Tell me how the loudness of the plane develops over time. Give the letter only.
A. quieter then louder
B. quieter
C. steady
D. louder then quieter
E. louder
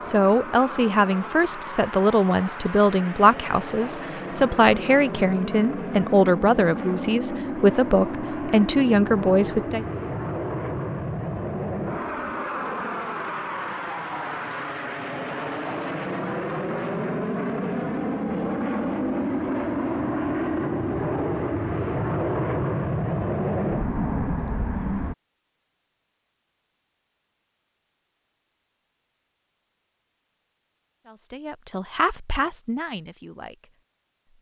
E.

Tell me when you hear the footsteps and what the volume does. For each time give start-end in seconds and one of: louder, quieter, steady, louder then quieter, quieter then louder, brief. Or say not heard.
not heard.